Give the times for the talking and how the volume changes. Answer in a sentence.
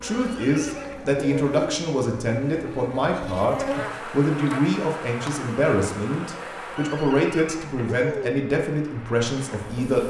You can hear the talking from 0.0 to 10.0 s, at a steady volume.